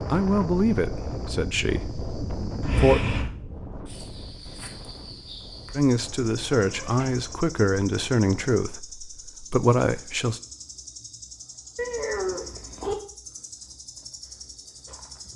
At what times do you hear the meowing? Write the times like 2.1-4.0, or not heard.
2.6-3.3, 6.7-7.2, 11.8-12.9.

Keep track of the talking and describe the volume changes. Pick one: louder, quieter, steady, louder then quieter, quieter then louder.
steady.